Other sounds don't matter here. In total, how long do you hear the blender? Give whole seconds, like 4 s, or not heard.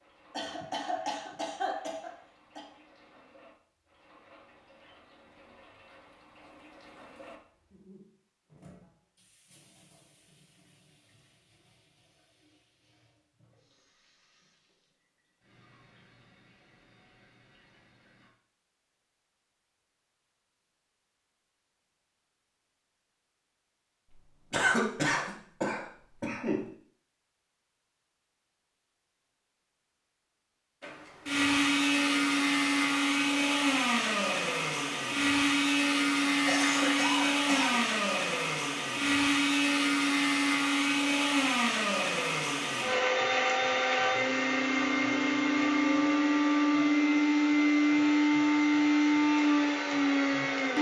20 s.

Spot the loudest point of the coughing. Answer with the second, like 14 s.
25 s.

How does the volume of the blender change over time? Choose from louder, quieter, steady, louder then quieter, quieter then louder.
steady.